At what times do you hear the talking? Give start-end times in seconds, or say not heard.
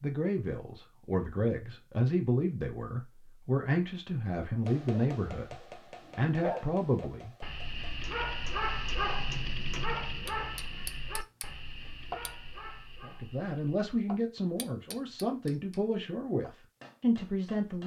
0.0-5.5, 6.2-7.3, 13.0-17.8.